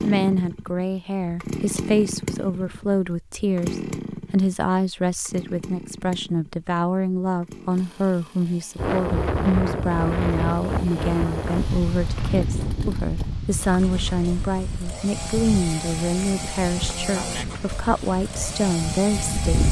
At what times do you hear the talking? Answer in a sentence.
You can hear the talking from 0.0 to 19.6 s.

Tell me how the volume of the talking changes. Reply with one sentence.
The volume of the talking stays about the same.